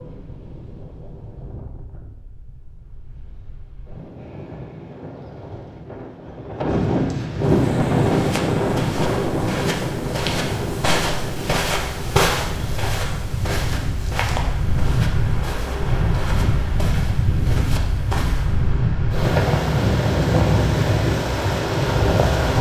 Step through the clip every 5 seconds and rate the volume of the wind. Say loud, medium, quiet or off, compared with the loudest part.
quiet, loud, medium, loud, loud.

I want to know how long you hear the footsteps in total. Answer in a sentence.
You can hear the footsteps for 11 seconds altogether.